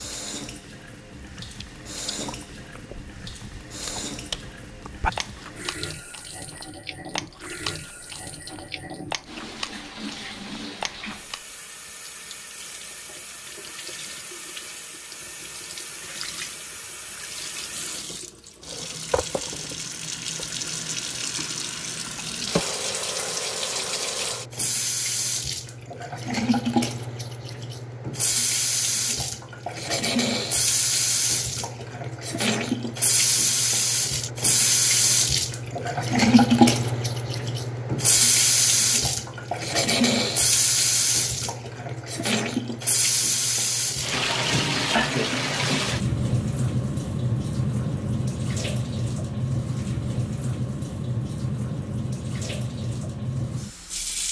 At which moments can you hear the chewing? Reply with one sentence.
The chewing can be heard from 1.4 to 11.4 s.